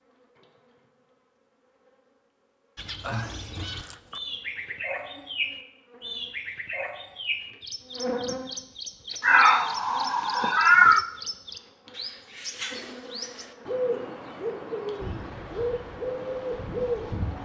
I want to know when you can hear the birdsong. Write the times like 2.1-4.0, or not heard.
2.8-17.4.